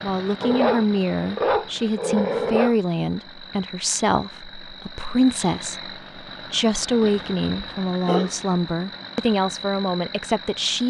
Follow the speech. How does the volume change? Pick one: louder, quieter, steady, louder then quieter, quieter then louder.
steady.